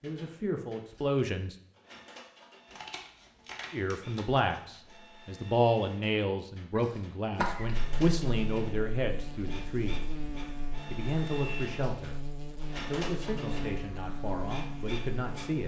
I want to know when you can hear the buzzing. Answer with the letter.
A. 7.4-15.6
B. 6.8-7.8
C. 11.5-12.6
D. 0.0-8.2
A.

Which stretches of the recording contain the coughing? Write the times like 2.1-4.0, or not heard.
6.8-7.8.